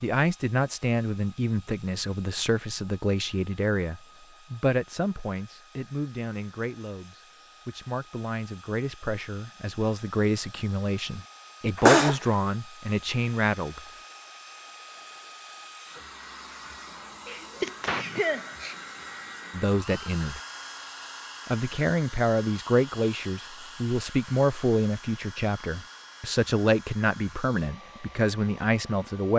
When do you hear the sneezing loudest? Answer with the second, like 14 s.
12 s.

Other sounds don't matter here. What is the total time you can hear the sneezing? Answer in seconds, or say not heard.
2 s.